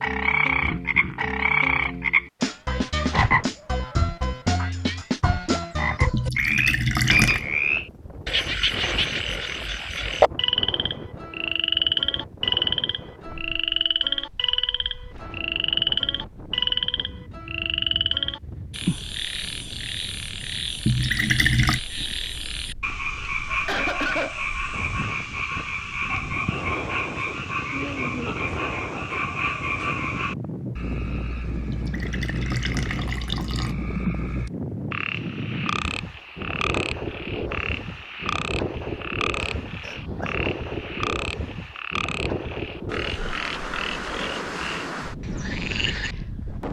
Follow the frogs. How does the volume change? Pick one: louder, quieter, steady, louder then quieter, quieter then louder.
quieter.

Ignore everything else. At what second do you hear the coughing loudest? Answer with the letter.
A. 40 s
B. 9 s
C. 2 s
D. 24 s
D.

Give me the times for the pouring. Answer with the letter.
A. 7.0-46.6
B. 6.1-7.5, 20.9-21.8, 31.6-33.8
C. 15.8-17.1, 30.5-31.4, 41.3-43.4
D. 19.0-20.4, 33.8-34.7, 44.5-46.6
B.